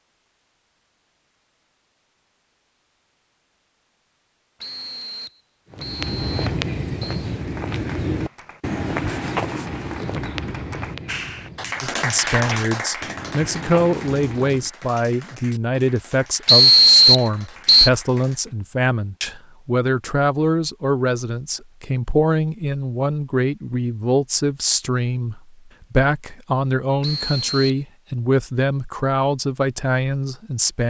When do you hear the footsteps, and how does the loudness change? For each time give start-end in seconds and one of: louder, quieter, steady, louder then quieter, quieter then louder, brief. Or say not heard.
5.7-14.7 quieter then louder.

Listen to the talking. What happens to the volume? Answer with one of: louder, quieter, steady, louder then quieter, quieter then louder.
steady.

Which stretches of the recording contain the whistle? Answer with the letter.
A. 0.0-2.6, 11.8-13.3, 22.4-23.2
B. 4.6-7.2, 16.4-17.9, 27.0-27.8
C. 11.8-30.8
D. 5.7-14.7
B.